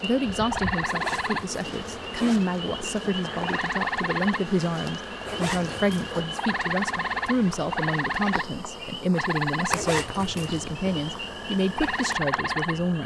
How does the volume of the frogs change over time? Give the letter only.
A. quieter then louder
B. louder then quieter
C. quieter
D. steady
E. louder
D.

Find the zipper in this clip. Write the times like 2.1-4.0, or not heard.
0.8-2.4, 5.2-6.2, 9.7-10.7.